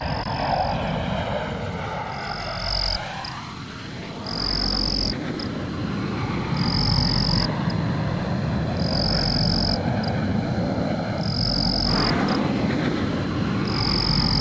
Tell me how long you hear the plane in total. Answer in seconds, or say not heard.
14 s.